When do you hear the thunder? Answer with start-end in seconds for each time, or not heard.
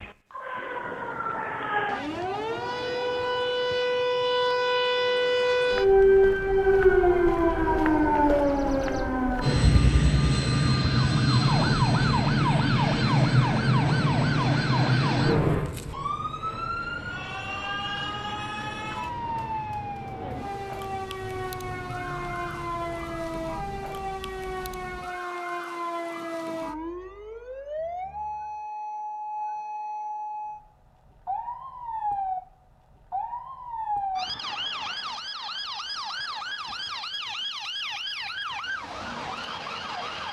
not heard.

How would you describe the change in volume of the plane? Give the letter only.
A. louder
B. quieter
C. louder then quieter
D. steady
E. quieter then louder
B.